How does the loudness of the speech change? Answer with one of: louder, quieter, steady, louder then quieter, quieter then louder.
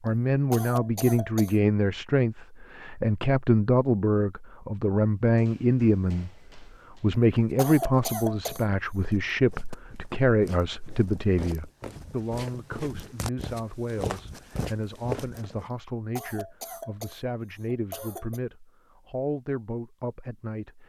quieter.